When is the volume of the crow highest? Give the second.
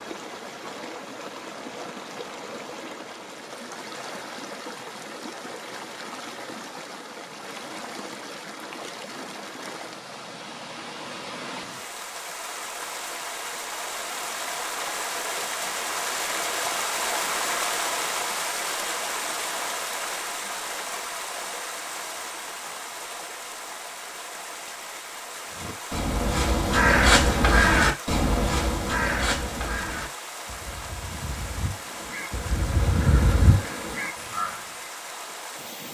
27 s.